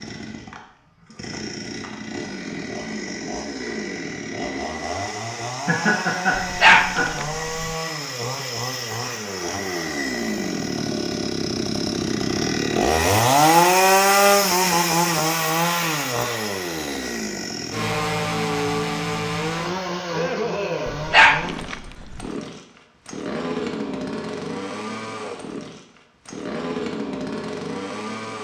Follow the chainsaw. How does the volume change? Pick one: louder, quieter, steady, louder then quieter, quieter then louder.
louder then quieter.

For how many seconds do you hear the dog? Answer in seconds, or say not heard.
3 s.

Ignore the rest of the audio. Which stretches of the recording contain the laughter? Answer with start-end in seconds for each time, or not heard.
5.7-7.1.